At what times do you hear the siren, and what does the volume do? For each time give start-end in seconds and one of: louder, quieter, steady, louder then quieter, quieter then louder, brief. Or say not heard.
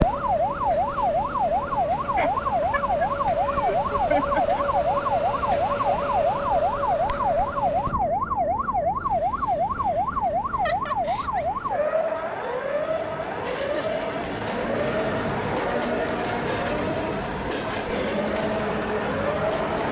0.0-19.6 quieter.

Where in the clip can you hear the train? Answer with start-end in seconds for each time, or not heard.
0.0-19.8.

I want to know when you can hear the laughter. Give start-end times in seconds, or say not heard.
2.1-4.7, 10.5-11.4, 13.4-14.0.